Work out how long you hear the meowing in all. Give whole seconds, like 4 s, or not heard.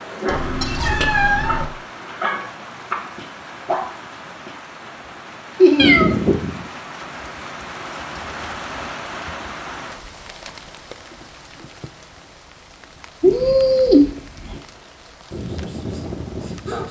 4 s.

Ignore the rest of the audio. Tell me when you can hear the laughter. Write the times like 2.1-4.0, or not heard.
5.5-6.0.